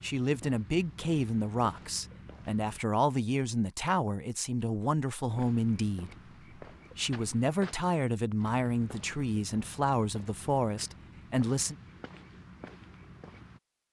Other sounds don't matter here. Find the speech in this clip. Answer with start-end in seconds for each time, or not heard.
0.0-6.2, 7.0-11.8.